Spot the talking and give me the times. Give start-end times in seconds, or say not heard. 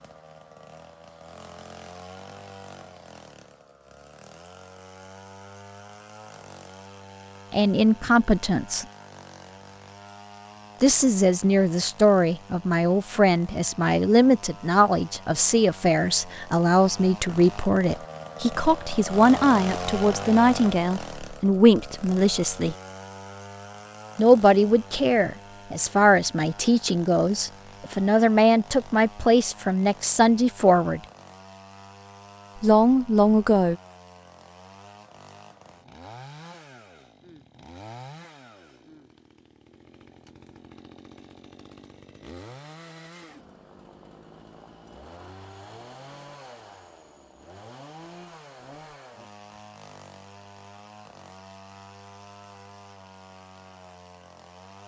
7.5-8.8, 10.8-22.8, 24.1-31.0, 32.6-33.8.